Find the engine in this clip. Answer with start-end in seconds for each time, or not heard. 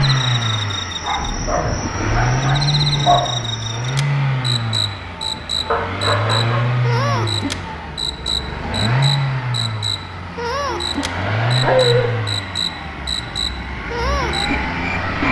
0.0-15.2.